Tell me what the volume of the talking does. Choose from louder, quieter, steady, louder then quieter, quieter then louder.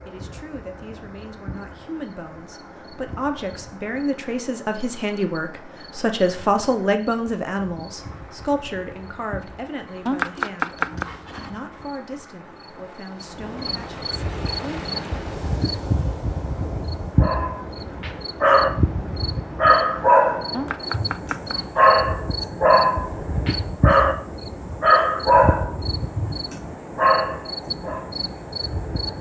louder then quieter.